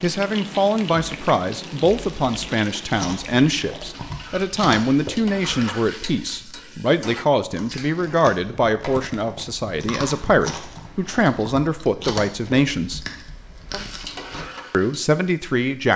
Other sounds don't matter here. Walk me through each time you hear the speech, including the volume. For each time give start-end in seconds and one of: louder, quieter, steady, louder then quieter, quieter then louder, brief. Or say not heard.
0.0-13.0 steady
14.7-15.9 brief.